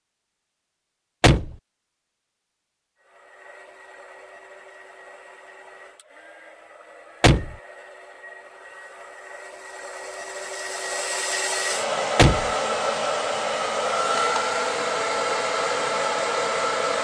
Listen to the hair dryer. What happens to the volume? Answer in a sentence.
The loudness of the hair dryer goes up.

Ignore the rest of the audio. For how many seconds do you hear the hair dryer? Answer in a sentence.
The hair dryer can be heard for 14 seconds in total.